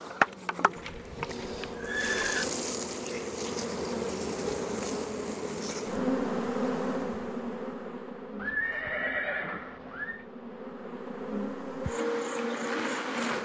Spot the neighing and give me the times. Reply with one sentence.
You can hear the neighing from 0.8 to 2.5 s and from 8.3 to 10.2 s.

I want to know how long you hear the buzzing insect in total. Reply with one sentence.
You can hear the buzzing insect for 13 seconds altogether.